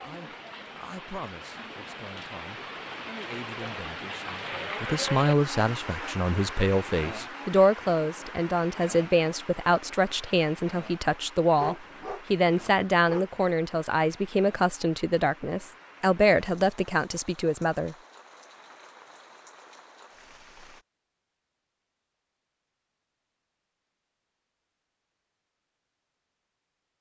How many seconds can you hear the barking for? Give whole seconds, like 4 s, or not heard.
2 s.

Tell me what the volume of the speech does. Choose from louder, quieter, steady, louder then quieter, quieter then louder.
louder.